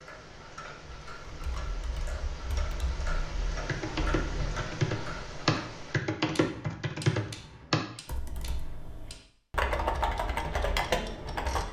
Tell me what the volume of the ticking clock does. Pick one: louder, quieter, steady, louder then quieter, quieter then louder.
louder then quieter.